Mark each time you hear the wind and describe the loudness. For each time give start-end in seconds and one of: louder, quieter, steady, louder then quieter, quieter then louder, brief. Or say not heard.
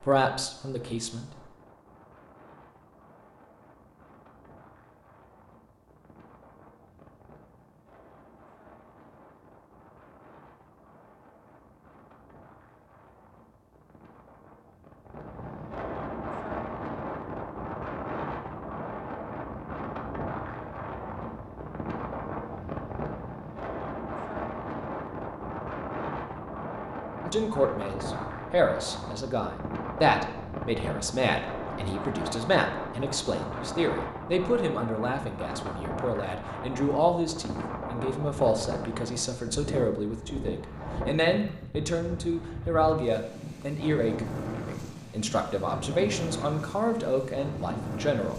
0.0-48.3 louder.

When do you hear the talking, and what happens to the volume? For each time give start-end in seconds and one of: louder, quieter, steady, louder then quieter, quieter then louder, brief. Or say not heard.
0.0-1.3 brief
27.2-48.3 steady.